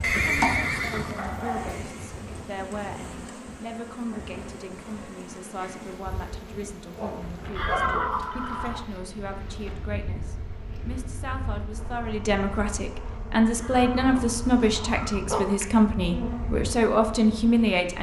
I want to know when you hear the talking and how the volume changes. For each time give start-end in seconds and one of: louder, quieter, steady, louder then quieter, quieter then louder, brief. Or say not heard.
0.1-17.9 louder.